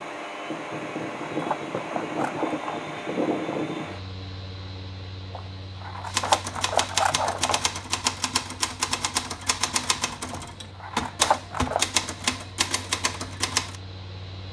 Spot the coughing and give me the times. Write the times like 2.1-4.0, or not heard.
not heard.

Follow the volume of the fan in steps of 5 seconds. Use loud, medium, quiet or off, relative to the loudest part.
loud, quiet, quiet.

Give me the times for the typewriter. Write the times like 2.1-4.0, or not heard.
6.0-13.8.